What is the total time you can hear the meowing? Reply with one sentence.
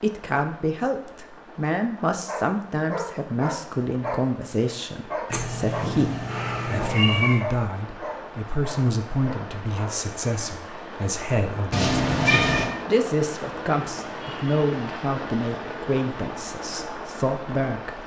The meowing can be heard for 3 seconds in total.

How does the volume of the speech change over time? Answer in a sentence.
The loudness of the speech stays about the same.